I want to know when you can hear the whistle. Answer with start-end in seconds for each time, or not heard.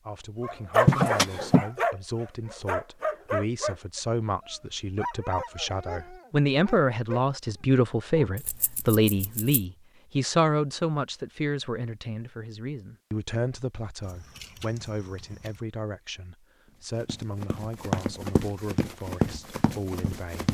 not heard.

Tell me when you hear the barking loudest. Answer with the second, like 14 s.
1 s.